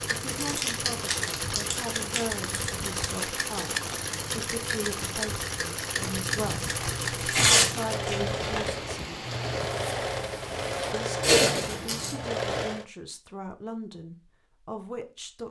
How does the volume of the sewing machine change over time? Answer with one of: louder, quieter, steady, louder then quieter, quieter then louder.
steady.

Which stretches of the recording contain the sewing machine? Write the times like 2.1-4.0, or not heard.
0.0-12.8.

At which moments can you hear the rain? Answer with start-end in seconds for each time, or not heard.
0.0-10.9.